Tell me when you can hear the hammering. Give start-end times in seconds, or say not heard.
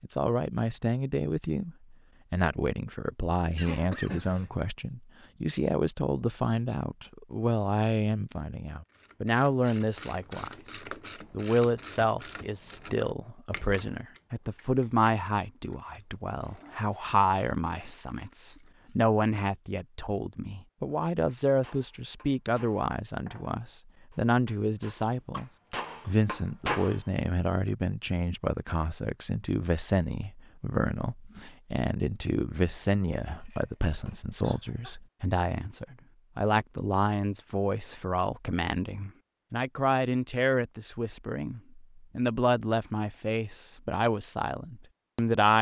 21.2-27.0.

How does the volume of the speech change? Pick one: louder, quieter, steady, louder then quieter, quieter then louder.
steady.